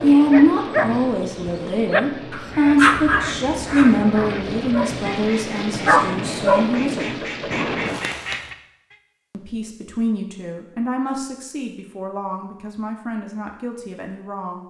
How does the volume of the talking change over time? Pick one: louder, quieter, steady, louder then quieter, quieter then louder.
quieter.